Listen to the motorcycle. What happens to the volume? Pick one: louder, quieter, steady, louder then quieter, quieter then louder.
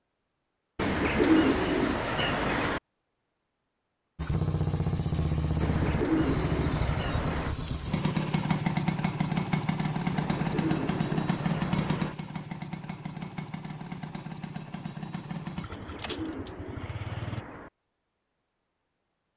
quieter.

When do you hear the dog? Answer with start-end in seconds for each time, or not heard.
not heard.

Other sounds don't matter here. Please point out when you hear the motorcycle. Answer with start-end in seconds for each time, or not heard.
4.2-17.4.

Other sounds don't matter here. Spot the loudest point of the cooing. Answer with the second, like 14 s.
1 s.